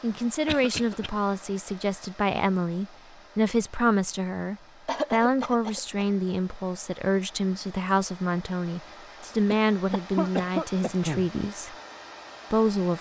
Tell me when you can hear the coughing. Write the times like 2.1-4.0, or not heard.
0.5-1.1, 4.8-6.3, 9.5-11.3.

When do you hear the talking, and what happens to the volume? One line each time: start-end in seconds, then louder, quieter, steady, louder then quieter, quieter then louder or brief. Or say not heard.
0.0-11.8 steady
12.5-12.9 brief.